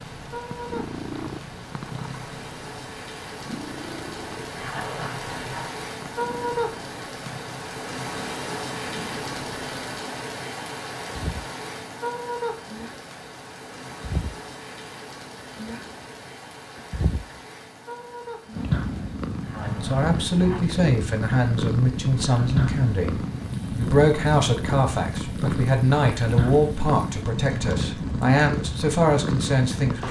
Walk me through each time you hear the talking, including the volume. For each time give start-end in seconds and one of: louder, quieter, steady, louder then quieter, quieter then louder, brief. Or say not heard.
19.6-30.0 steady.